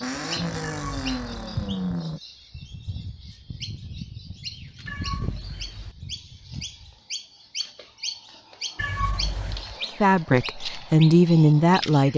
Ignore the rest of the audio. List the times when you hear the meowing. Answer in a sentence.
The meowing can be heard from 0.6 to 1.7 s, from 4.8 to 6.0 s and from 8.8 to 9.8 s.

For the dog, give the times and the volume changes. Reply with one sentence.
The dog can't be heard in this clip.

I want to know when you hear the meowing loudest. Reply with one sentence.
The loudest moment of the meowing is at 9 seconds.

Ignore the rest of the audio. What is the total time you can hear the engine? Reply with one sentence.
You can hear the engine for 2 seconds altogether.